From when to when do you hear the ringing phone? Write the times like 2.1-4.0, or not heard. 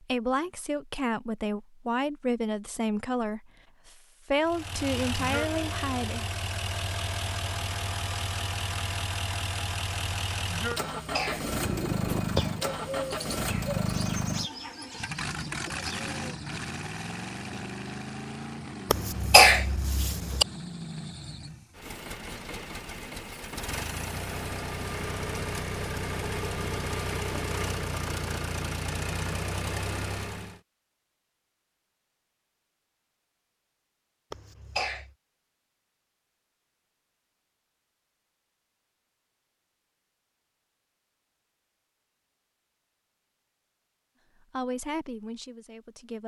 not heard.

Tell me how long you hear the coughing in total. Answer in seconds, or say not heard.
3 s.